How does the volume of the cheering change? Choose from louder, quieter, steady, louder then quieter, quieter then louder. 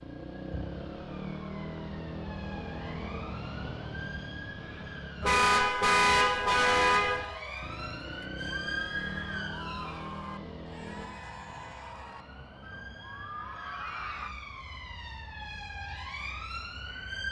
louder.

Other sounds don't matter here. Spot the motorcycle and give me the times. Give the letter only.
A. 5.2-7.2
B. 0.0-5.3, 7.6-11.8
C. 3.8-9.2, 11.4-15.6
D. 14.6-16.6
B.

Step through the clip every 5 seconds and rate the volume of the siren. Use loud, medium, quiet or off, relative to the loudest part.
medium, loud, medium, loud.